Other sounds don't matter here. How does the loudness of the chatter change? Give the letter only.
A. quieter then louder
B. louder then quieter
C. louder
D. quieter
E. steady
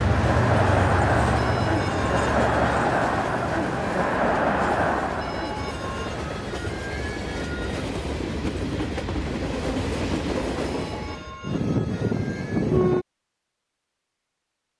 D.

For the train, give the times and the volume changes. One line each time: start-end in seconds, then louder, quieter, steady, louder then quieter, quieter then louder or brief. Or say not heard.
0.0-13.1 quieter then louder.